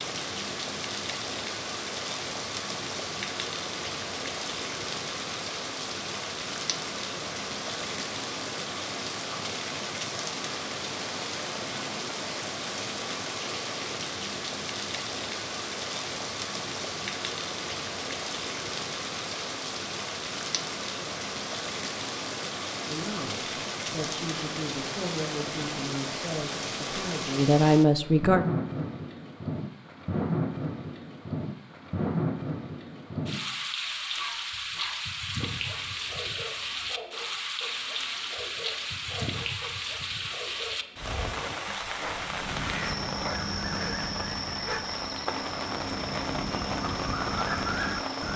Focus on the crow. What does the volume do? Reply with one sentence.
The loudness of the crow goes down, then up.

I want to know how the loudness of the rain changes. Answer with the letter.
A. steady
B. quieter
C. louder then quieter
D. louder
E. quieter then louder
A.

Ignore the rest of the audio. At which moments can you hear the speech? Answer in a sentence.
You can hear the speech from 22.9 to 28.4 s.